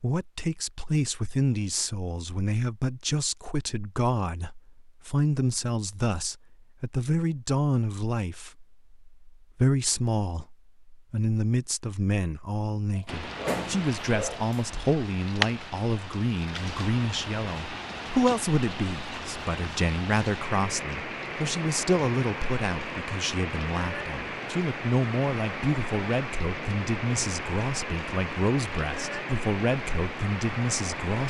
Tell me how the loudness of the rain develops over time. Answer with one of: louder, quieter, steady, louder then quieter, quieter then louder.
steady.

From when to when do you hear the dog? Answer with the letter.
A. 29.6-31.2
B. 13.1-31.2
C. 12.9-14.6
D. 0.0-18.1
C.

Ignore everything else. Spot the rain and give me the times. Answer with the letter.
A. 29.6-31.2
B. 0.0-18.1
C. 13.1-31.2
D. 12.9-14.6
C.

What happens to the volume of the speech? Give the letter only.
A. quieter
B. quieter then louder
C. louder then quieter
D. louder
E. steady
E.